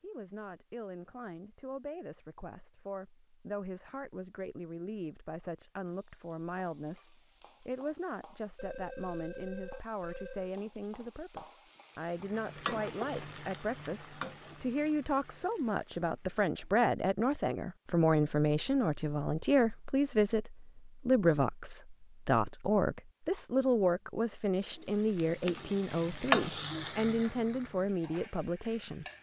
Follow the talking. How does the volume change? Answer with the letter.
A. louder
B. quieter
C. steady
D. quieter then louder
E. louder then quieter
A.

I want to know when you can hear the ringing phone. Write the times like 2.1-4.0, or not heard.
8.6-10.6.